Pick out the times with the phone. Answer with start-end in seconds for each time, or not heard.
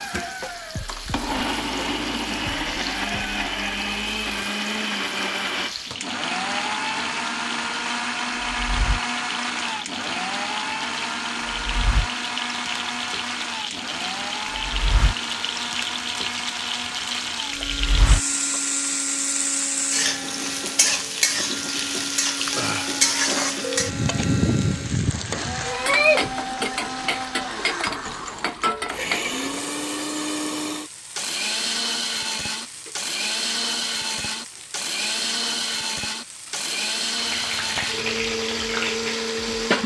22.4-23.9.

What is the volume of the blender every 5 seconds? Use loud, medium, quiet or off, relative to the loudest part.
loud, loud, loud, medium, medium, loud, loud, loud.